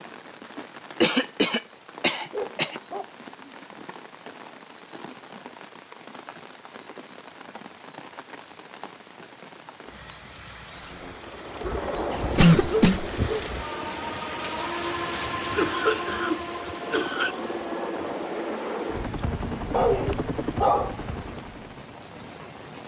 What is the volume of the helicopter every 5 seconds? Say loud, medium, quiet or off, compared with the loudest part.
off, off, loud, loud, loud.